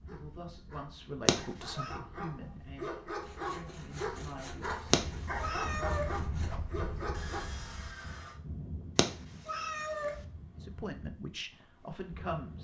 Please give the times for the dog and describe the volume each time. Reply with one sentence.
You can hear the dog from 0.1 to 7.5 s, getting louder.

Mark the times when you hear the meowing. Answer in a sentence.
The meowing can be heard from 1.2 to 1.9 s, from 4.9 to 6.1 s and from 8.9 to 10.2 s.